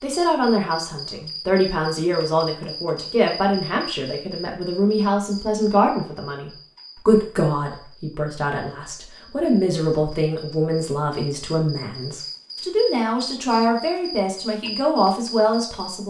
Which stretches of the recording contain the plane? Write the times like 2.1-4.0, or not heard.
not heard.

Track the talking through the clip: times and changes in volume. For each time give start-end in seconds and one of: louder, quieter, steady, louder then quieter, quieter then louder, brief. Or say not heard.
0.0-16.0 steady.